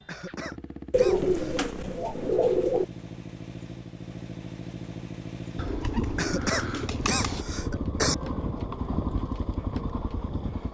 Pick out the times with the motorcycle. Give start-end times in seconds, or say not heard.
0.0-10.6.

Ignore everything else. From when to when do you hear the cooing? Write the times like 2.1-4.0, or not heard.
0.9-2.9, 5.5-7.5.